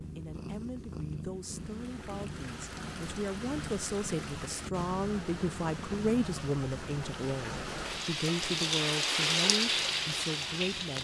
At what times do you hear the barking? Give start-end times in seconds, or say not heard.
not heard.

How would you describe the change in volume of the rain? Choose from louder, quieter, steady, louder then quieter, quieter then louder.
louder.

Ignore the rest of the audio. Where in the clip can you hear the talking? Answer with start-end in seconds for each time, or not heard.
0.0-10.9.